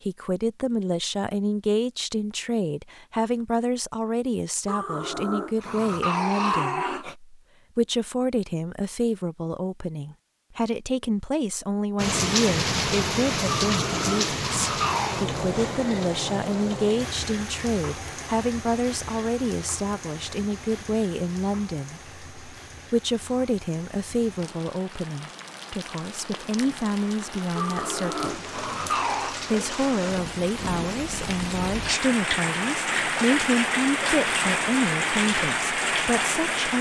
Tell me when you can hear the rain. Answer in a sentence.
You can hear the rain from 11.9 to 36.7 s.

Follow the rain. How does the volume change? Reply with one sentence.
The volume of the rain goes down, then up.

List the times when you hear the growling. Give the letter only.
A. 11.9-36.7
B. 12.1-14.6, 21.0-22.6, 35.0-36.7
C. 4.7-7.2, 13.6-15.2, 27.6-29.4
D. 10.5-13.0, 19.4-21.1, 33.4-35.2
C.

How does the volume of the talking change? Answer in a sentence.
The volume of the talking stays about the same.